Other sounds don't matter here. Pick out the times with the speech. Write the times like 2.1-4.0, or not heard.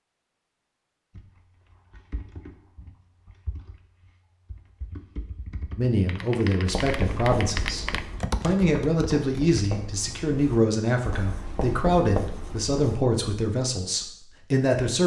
5.8-15.0.